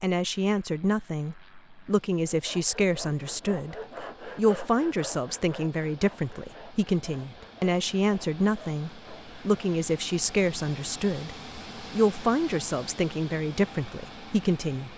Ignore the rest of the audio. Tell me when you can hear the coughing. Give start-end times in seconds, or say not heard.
not heard.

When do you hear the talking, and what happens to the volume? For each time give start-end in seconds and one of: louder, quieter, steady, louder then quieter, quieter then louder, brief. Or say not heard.
0.0-14.9 steady.